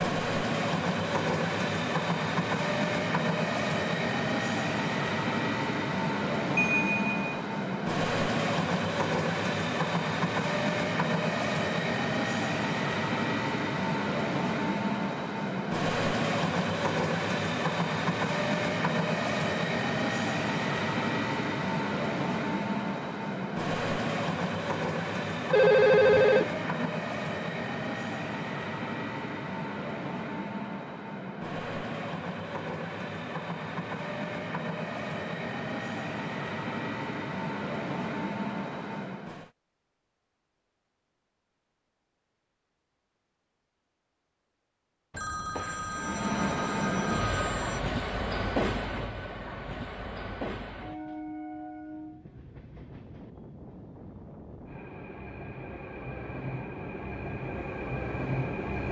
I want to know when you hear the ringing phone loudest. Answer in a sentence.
The loudest moment of the ringing phone is at 26 seconds.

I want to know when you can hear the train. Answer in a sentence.
You can hear the train from 0.0 to 39.5 s and from 45.9 to 58.8 s.